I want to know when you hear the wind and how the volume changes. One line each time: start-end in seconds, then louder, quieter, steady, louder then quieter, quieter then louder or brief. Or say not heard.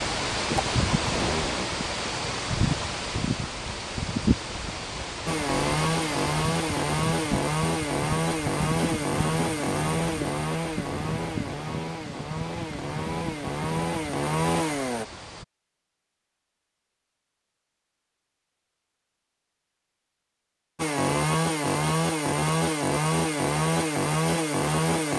0.0-15.4 quieter.